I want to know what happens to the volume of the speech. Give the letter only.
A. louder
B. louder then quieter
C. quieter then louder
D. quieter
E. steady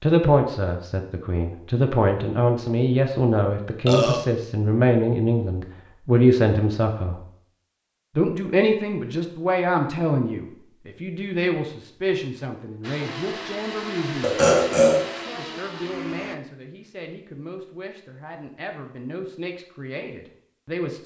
D.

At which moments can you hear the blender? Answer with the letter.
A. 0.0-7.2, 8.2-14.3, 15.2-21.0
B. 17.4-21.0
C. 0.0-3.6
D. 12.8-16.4
D.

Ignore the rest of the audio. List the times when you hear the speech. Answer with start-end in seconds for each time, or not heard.
0.0-7.2, 8.2-14.3, 15.2-21.0.